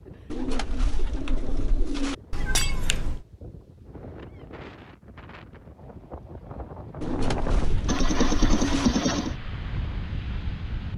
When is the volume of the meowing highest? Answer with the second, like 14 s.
9 s.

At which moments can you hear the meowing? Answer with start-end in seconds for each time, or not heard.
2.3-3.2, 7.8-9.3.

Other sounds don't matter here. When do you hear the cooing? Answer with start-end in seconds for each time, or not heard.
0.3-2.1, 7.0-8.9.